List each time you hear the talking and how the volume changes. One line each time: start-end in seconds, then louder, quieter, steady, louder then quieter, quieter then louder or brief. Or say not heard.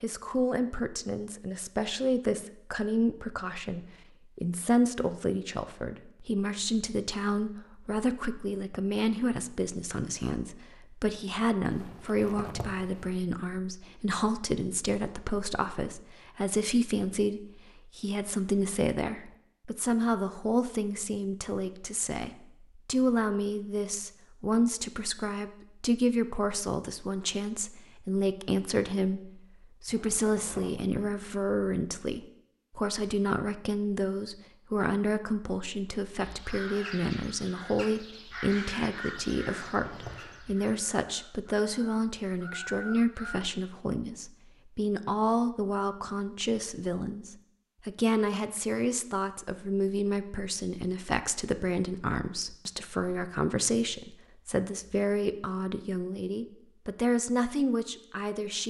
0.0-58.6 steady.